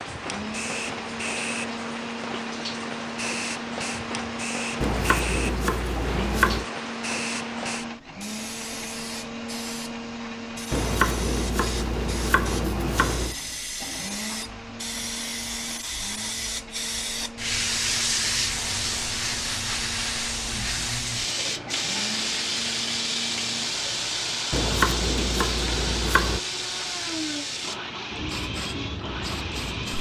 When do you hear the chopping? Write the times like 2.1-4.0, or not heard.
4.8-6.7, 10.7-13.3, 24.5-26.4.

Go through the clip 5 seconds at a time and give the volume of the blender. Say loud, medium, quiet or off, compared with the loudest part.
loud, loud, loud, medium, medium, loud.